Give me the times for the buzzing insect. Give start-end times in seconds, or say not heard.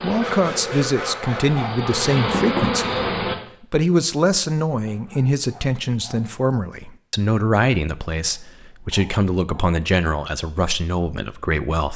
0.0-3.4.